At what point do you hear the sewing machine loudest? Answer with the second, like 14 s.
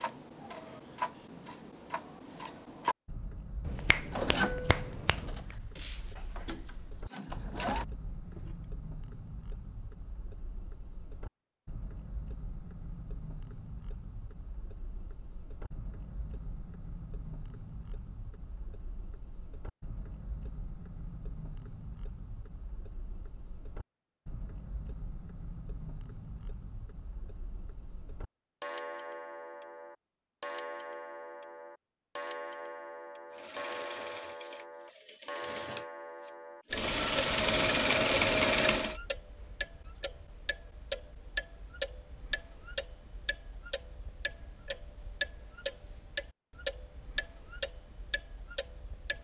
38 s.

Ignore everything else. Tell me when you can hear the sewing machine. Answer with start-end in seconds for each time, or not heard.
4.1-8.6, 33.3-39.0.